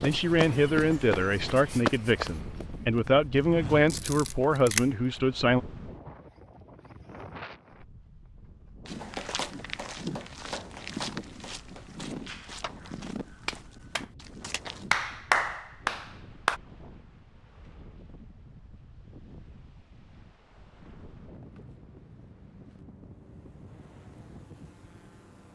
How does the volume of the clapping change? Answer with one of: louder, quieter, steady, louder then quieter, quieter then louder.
quieter then louder.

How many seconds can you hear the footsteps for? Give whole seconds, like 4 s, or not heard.
11 s.